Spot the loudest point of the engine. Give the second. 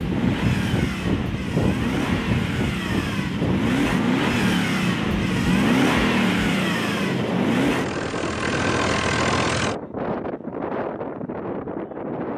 6 s.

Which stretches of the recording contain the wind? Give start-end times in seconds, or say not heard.
0.0-12.3.